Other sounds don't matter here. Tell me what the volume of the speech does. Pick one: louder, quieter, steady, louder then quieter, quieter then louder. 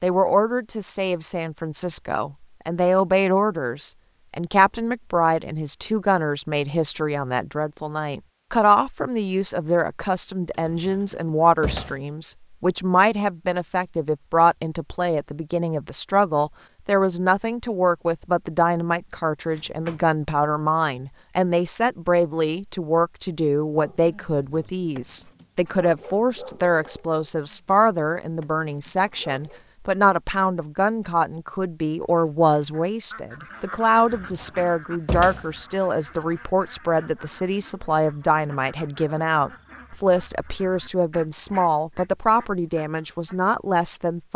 steady.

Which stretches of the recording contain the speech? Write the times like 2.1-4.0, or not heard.
0.0-44.3.